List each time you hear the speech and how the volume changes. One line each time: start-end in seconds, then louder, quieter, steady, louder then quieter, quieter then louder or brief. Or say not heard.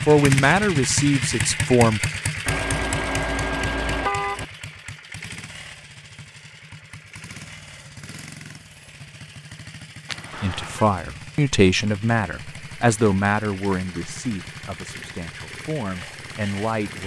0.0-2.1 brief
10.3-17.0 quieter.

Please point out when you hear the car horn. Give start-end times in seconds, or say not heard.
2.5-4.5, 10.1-10.8.